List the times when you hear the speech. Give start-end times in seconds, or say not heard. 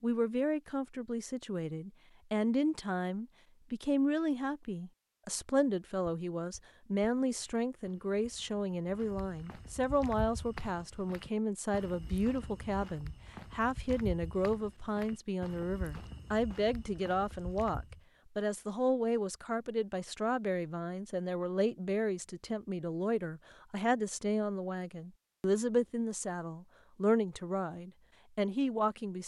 0.0-29.2.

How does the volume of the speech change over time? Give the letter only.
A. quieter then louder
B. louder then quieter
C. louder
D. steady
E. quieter
D.